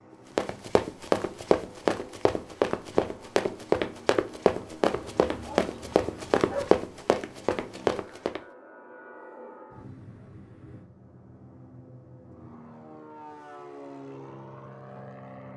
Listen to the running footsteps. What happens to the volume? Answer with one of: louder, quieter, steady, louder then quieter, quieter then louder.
steady.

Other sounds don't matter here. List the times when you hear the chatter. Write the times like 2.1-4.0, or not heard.
not heard.